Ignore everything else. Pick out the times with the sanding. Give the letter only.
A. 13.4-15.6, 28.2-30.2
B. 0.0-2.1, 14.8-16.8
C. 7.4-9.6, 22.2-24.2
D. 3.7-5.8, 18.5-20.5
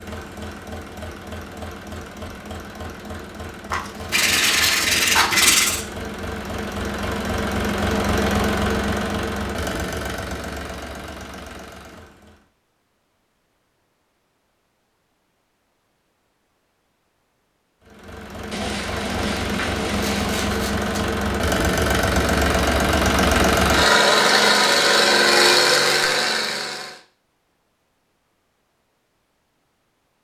D.